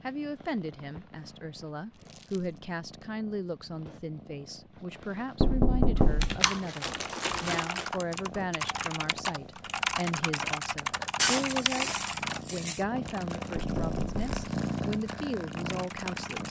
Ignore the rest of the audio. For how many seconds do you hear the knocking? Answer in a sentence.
The knocking can be heard for 2 seconds in total.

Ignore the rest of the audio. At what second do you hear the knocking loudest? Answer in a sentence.
The loudest moment of the knocking is at 6 seconds.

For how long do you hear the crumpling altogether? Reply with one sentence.
The crumpling can be heard for 4 seconds in total.